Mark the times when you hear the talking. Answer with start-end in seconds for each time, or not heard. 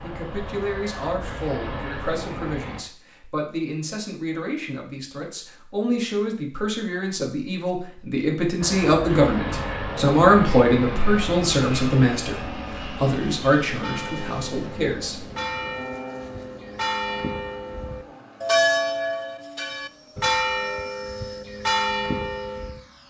0.0-15.2.